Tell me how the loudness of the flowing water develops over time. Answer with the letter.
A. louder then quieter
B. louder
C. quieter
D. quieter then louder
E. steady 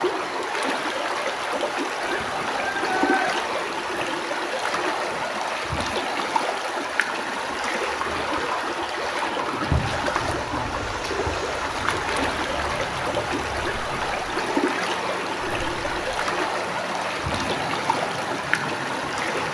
E.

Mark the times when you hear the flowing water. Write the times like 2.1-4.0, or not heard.
0.0-19.4.